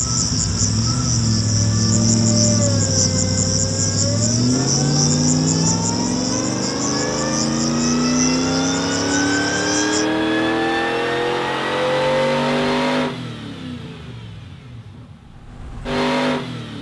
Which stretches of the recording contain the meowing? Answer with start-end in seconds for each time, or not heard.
not heard.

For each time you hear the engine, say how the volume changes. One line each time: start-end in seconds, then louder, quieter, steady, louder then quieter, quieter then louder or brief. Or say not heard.
0.0-16.7 quieter.